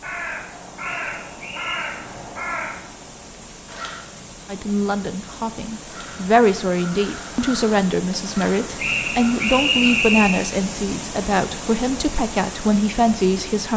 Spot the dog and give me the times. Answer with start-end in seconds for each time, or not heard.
not heard.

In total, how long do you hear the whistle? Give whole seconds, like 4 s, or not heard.
3 s.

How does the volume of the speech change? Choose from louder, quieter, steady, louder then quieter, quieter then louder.
steady.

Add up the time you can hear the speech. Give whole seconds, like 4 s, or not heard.
9 s.